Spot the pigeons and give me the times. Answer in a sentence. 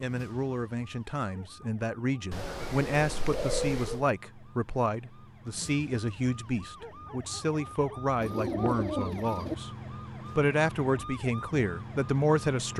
You can hear the pigeons from 2.3 to 4.0 s and from 8.2 to 9.6 s.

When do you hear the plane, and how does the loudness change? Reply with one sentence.
You can't hear the plane here.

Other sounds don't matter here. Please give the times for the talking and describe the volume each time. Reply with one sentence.
You can hear the talking from 0.0 to 9.7 s, at a steady volume; and briefly from 10.3 to 12.7 s.